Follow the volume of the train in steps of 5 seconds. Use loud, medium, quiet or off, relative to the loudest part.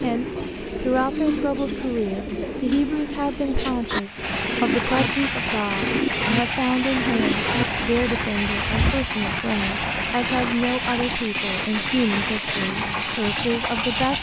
medium, loud, loud.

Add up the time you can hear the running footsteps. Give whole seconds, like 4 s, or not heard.
not heard.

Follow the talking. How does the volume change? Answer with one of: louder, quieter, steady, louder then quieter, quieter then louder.
steady.